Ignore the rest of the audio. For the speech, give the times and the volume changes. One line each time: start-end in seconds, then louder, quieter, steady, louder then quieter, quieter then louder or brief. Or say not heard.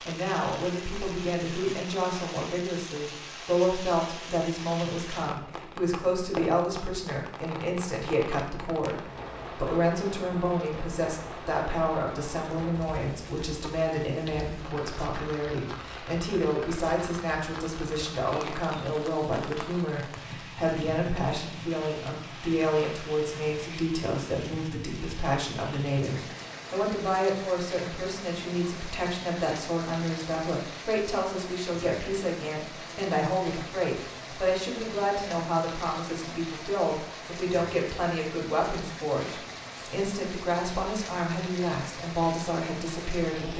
0.1-43.5 steady.